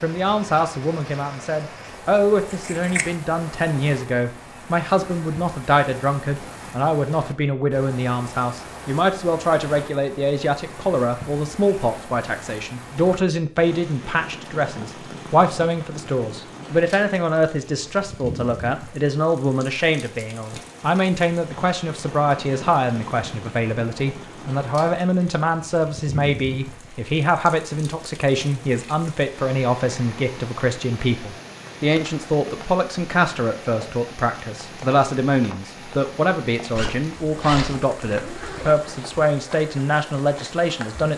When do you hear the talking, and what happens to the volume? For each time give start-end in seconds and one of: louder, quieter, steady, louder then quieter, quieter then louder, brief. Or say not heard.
0.0-41.1 steady.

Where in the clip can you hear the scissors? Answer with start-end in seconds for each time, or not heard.
2.5-3.1.